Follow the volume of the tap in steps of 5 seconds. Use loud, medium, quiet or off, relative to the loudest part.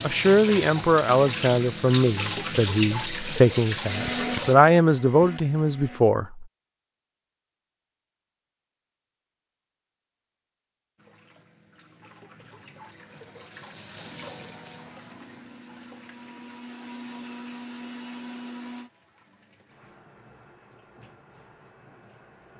loud, off, quiet, quiet, quiet.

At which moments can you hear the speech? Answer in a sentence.
You can hear the speech from 0.0 to 6.5 s.